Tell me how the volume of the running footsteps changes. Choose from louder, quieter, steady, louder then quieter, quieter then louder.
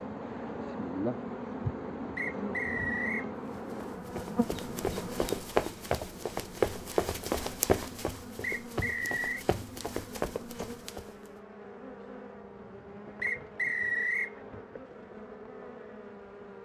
louder then quieter.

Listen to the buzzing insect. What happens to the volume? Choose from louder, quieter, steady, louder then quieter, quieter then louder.
quieter.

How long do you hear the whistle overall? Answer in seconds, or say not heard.
3 s.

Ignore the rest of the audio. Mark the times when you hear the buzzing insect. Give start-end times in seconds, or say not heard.
0.0-16.6.